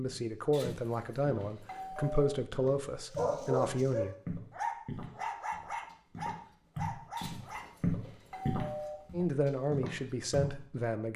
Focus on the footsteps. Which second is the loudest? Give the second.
8 s.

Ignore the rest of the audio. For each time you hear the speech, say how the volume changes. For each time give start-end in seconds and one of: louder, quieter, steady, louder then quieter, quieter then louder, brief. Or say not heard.
0.0-4.2 steady
9.1-11.1 brief.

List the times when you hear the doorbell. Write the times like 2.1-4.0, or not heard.
0.5-2.3, 7.2-8.9.